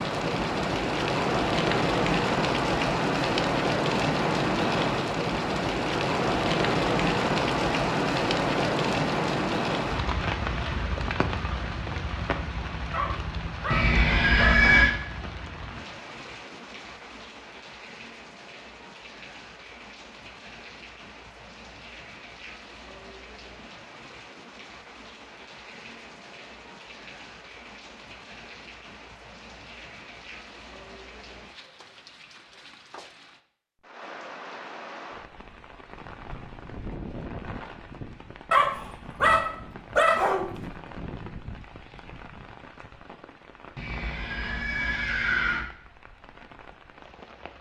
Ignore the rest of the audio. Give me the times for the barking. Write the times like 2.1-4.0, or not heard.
12.9-14.8, 38.5-40.5.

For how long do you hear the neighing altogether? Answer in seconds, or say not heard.
3 s.